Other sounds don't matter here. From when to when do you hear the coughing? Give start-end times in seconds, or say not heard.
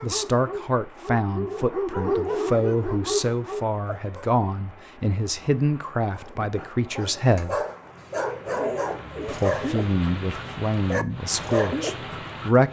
not heard.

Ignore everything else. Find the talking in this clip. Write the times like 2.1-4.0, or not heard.
0.0-7.6, 9.2-12.6.